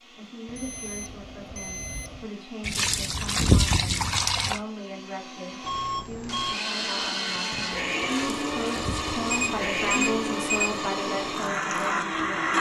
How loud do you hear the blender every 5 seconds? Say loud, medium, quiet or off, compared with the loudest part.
quiet, loud, loud.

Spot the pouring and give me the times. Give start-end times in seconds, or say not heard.
2.6-4.6, 8.1-9.4.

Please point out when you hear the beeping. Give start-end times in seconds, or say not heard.
0.5-2.3, 5.6-6.6, 9.2-10.8.